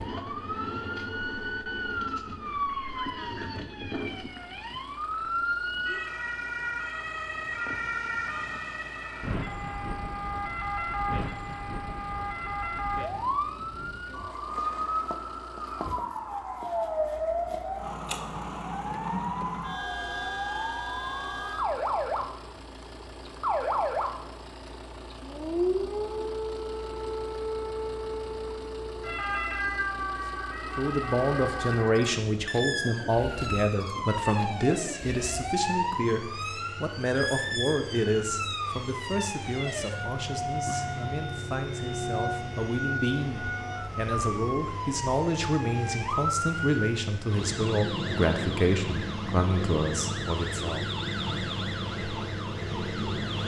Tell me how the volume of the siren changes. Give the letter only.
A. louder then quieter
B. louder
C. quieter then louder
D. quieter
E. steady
E.